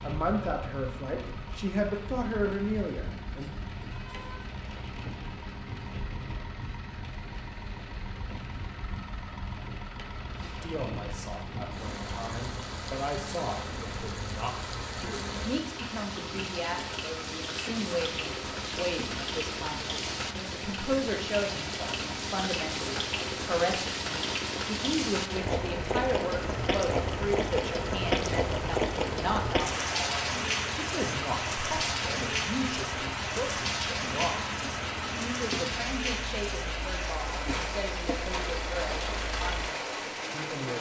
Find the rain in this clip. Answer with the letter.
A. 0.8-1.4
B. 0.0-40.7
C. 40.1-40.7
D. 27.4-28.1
B.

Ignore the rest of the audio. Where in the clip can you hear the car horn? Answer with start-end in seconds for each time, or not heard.
3.9-4.5.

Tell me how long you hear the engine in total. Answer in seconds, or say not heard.
41 s.